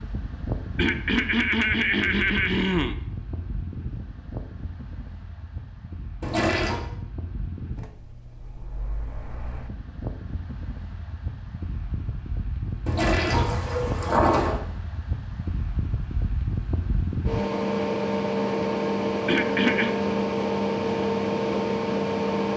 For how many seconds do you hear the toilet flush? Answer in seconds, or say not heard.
2 s.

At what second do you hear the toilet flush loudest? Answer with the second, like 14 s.
14 s.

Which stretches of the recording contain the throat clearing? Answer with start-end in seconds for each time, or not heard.
0.8-3.0, 19.2-19.9.